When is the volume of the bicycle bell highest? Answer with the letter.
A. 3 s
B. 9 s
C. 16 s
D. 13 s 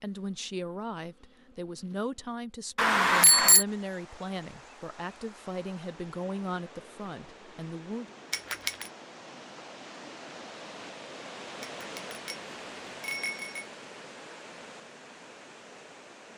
A.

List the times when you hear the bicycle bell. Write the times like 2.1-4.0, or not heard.
2.8-3.6, 8.3-8.8, 11.6-13.7.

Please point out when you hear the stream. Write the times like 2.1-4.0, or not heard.
3.6-16.3.